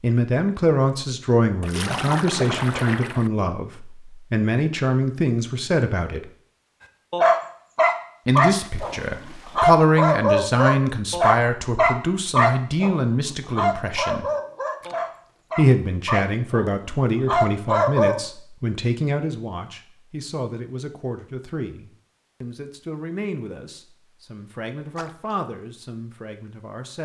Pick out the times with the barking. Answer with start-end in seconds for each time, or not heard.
7.1-18.2.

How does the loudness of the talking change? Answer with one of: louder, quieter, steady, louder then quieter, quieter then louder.
quieter.